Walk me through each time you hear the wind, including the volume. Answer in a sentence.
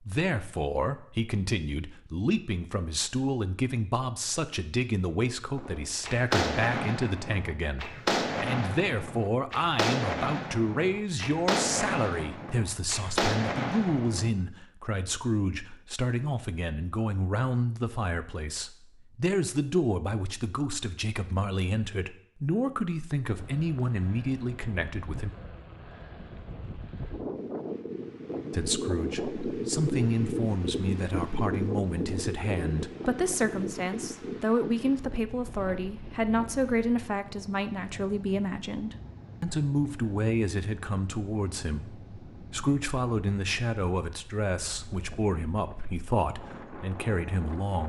You can hear the wind from 23.2 to 47.8 s, getting louder then quieter.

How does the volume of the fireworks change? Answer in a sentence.
The loudness of the fireworks stays about the same.